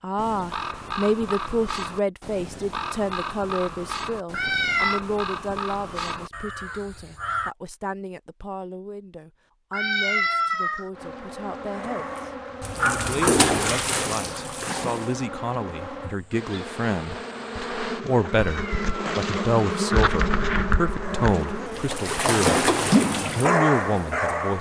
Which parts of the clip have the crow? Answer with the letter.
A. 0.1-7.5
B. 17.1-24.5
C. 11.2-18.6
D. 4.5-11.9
A.